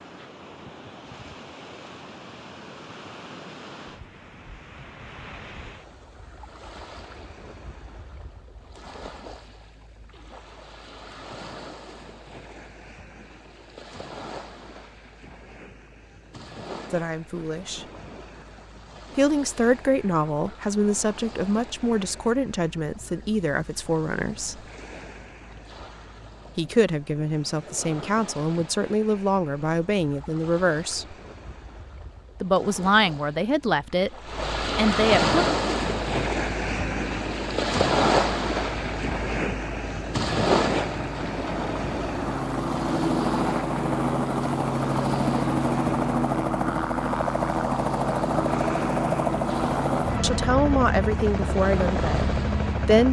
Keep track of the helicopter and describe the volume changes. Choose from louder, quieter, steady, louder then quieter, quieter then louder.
louder.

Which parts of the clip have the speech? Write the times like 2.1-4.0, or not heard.
16.9-17.9, 19.1-24.6, 26.6-31.1, 32.4-35.4, 50.2-53.0.